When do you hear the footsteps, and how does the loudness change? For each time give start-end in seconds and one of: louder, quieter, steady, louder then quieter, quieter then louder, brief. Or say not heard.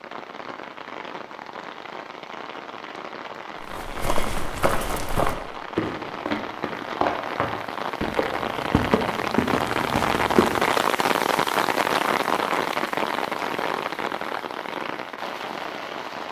3.6-10.7 steady.